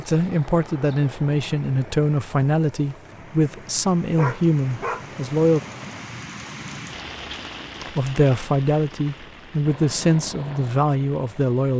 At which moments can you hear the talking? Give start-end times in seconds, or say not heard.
0.0-5.6, 7.9-11.7.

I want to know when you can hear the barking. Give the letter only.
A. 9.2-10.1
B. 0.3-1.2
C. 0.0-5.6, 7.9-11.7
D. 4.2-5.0
D.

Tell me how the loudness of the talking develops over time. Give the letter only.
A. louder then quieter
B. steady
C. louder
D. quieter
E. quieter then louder
B.